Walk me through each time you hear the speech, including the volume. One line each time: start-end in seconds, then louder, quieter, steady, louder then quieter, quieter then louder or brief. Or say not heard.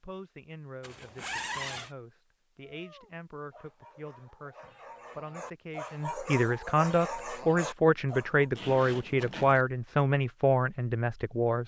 0.0-11.6 louder.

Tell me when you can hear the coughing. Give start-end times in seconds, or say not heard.
not heard.